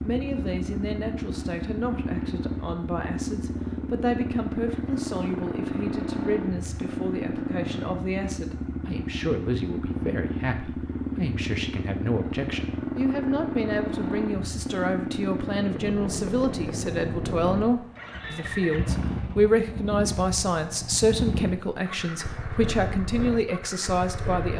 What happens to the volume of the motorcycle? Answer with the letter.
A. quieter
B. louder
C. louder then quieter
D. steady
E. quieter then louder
D.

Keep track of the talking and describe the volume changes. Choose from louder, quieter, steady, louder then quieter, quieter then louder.
louder.